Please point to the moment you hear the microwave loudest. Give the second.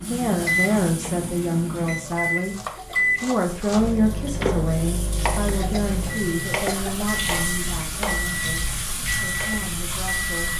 3 s.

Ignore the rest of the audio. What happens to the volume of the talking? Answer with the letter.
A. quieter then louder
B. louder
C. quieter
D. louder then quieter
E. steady
C.